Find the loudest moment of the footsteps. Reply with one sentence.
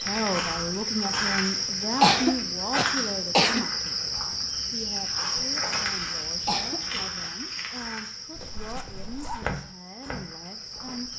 The volume of the footsteps peaks at 9 seconds.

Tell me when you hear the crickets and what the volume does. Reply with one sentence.
The crickets can be heard from 0.0 to 11.1 s, getting quieter.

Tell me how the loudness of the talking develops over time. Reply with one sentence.
The volume of the talking goes down.